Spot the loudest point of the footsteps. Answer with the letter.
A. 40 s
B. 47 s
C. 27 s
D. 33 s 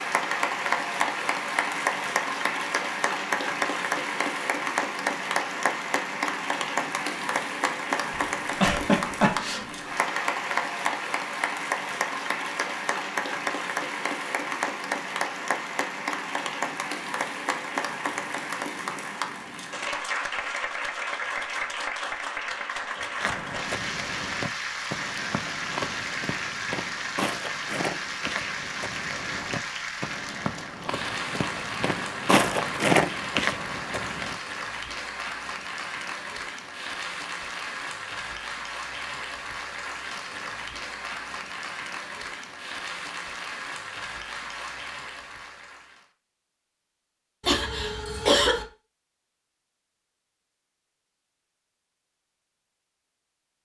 D.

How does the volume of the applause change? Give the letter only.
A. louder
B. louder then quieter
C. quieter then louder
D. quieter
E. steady
D.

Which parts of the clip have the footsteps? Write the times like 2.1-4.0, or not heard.
23.2-34.4.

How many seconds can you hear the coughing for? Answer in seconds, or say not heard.
3 s.